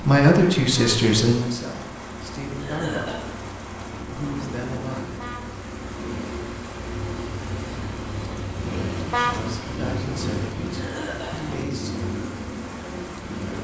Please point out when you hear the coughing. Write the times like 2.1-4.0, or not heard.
2.5-3.2, 10.7-11.6.